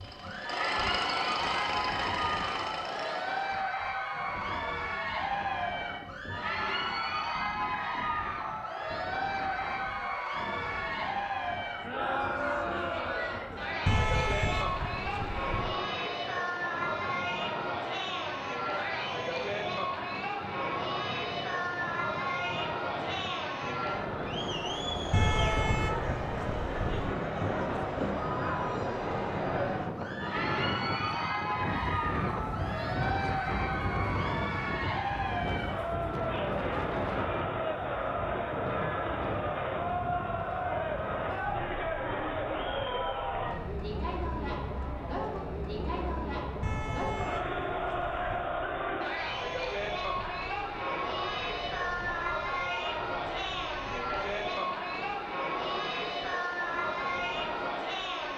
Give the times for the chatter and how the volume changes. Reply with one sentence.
You can hear the chatter from 0.1 to 58.3 s, at a steady volume.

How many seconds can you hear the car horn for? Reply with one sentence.
The car horn can be heard for 6 seconds in total.